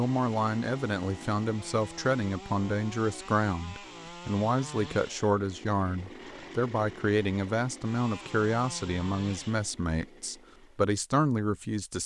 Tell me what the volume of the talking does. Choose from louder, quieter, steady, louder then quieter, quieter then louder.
steady.